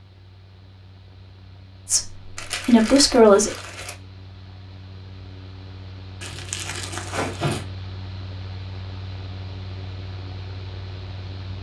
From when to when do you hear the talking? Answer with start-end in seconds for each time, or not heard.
1.9-3.5.